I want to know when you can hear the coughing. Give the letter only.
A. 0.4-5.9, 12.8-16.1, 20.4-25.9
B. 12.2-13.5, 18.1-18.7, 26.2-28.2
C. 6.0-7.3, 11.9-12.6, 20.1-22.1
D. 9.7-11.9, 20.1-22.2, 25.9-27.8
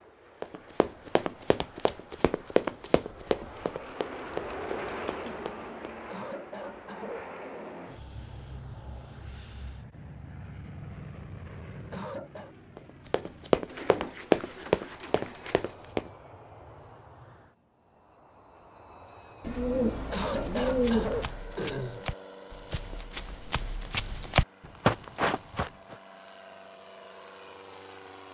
C.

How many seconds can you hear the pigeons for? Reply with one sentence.
The pigeons can be heard for 6 seconds in total.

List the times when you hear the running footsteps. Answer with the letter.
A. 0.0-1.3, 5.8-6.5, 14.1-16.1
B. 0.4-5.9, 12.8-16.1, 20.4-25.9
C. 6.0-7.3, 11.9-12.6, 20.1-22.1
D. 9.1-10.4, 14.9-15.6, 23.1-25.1
B.